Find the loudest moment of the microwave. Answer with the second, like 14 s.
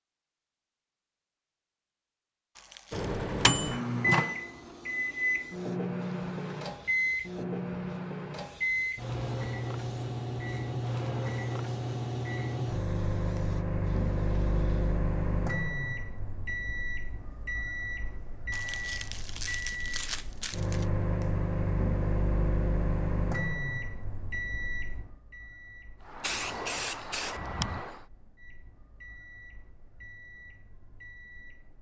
4 s.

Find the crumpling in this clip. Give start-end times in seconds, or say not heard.
2.5-3.2, 18.5-20.9.